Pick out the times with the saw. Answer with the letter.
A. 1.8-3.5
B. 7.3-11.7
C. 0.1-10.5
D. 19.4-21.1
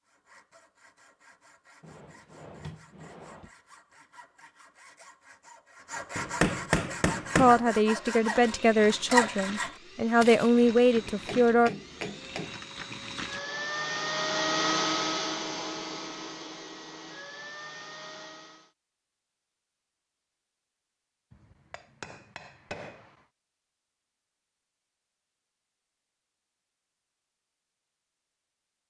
C.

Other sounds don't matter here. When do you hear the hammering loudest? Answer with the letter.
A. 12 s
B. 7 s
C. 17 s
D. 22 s
B.